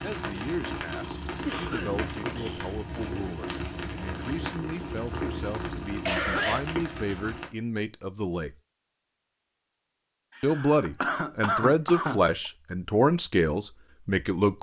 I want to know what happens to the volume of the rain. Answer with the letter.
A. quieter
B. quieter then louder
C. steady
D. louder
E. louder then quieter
C.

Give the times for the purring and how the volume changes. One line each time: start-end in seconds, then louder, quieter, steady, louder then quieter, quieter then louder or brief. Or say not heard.
0.0-6.2 steady.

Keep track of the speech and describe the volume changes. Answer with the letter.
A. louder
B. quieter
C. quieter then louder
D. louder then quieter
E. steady
A.